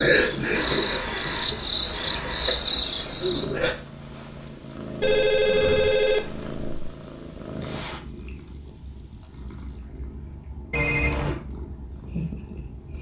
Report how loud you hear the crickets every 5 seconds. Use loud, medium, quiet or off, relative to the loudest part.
loud, loud, off.